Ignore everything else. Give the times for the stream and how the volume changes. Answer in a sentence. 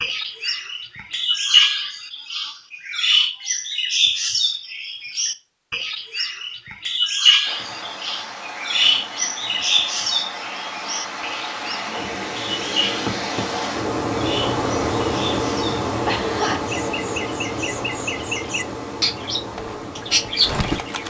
The stream can be heard from 7.4 to 21.0 s, getting louder then quieter.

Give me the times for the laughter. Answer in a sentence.
The laughter can be heard from 16.1 to 16.6 s.